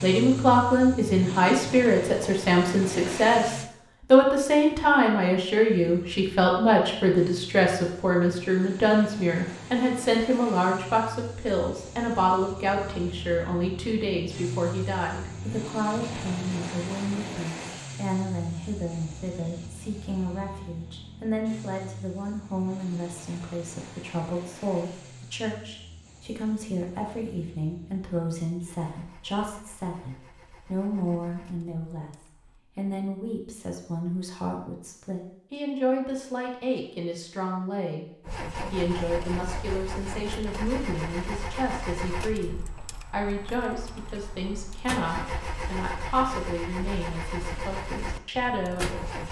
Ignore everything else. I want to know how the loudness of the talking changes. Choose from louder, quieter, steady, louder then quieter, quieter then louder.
quieter.